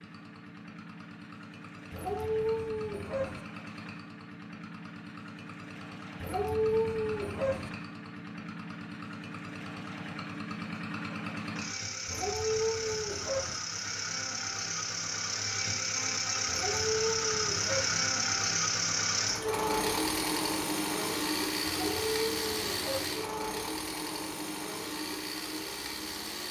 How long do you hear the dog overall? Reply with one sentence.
You can hear the dog for 8 seconds altogether.